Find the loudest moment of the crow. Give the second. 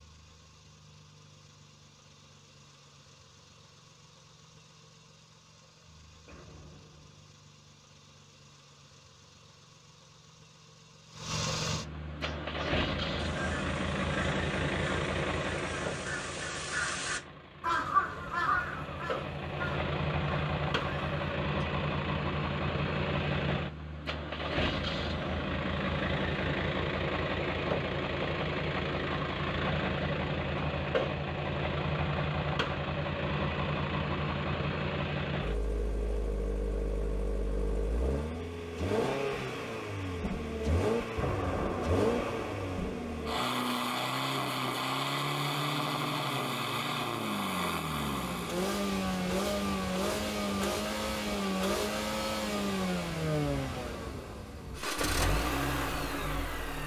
18 s.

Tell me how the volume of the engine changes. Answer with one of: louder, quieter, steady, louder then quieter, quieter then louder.
louder.